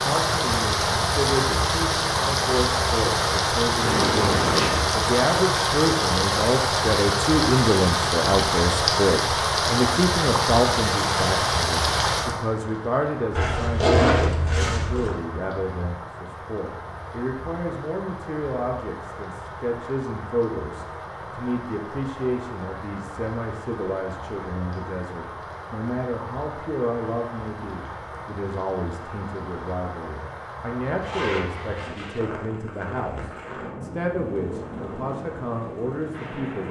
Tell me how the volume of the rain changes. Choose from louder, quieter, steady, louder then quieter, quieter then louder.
quieter.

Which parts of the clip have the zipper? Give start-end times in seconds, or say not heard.
3.8-4.8, 13.3-15.2, 31.0-32.2.